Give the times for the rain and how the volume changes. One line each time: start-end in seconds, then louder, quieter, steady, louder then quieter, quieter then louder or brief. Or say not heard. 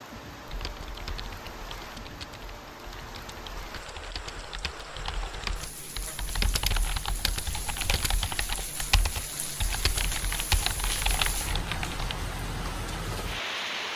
0.0-13.9 louder.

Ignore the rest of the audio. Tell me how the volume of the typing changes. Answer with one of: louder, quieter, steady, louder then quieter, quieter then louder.
louder.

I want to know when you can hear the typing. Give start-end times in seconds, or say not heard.
0.5-12.2.